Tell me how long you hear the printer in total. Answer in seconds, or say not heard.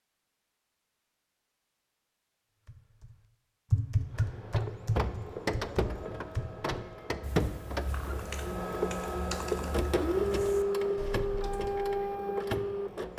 9 s.